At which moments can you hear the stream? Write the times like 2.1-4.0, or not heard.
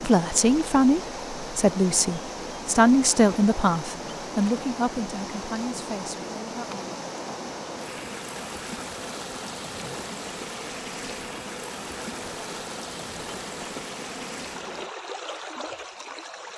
0.0-16.5.